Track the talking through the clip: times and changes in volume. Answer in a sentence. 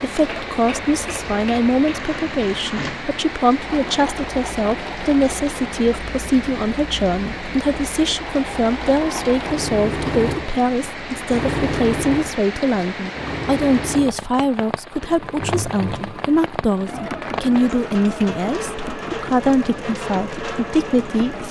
The talking can be heard from 0.0 to 21.4 s, at a steady volume.